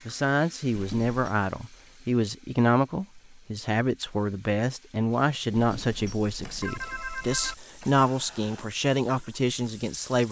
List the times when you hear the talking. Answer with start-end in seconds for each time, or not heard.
0.1-10.2.